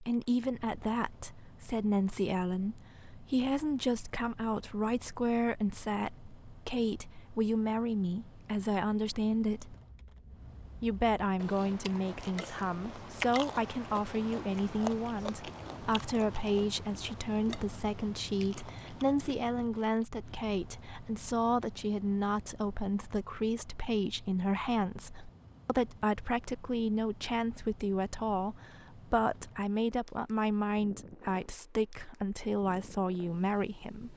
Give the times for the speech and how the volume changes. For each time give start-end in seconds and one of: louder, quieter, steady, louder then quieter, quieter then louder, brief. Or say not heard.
0.0-9.8 steady
10.8-34.1 steady.